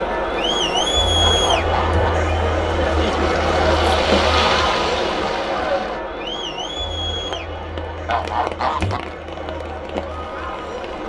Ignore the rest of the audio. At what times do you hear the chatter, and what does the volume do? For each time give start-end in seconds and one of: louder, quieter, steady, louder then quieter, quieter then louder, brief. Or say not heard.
0.0-11.0 quieter.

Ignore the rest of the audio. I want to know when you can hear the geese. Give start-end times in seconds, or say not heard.
1.1-2.1, 8.1-9.0.